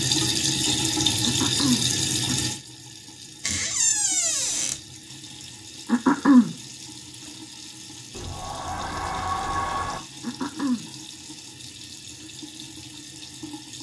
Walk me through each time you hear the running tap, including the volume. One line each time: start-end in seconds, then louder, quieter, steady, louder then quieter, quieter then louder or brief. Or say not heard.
0.0-13.7 quieter.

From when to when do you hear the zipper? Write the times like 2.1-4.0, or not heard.
not heard.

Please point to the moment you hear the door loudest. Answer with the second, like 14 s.
4 s.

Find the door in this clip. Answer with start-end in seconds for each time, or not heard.
3.4-4.8, 8.1-10.0.